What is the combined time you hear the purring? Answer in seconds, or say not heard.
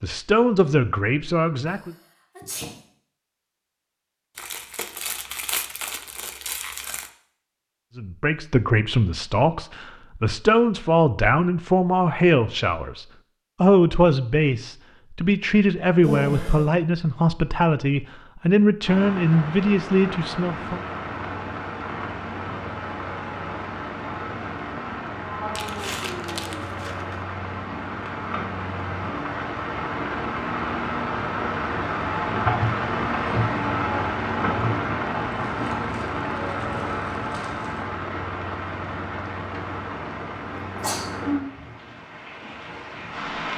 not heard.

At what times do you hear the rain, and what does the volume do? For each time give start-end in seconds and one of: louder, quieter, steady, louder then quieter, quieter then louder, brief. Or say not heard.
18.8-43.5 louder then quieter.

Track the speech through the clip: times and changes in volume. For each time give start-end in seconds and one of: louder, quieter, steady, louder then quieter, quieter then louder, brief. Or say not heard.
0.0-1.9 brief
8.0-20.8 steady.